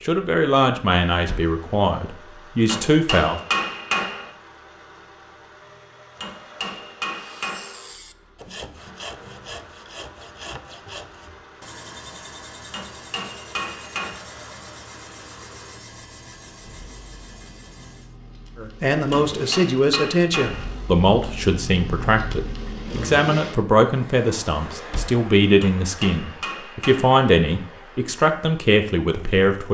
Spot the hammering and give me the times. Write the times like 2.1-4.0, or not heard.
2.6-4.3, 6.2-7.8, 12.7-14.2, 19.1-20.8, 25.6-27.2.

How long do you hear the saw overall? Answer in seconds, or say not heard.
11 s.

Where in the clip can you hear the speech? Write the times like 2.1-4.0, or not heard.
0.0-3.4, 18.6-29.6.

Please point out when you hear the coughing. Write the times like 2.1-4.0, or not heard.
not heard.